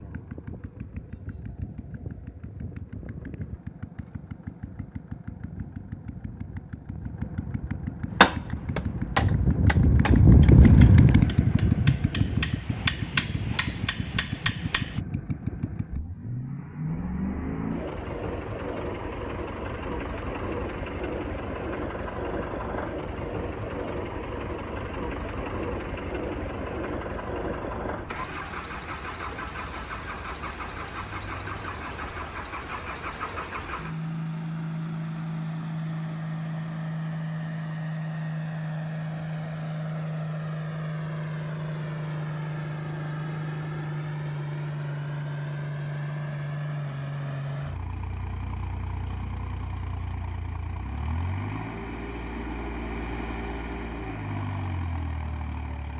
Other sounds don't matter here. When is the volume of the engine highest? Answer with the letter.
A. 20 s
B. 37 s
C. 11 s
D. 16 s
C.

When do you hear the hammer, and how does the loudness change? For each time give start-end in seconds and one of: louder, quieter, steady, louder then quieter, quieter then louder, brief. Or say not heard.
8.2-15.0 quieter then louder.